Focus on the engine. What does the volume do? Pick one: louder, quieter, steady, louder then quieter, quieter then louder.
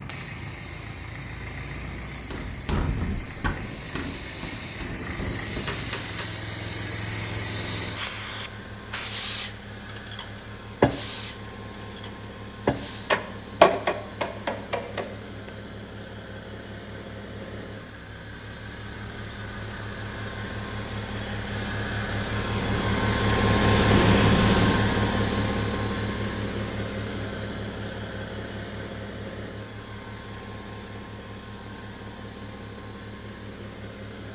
louder then quieter.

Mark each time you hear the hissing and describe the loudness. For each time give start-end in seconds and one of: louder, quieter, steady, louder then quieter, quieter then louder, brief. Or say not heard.
0.0-13.2 louder
22.5-24.9 brief.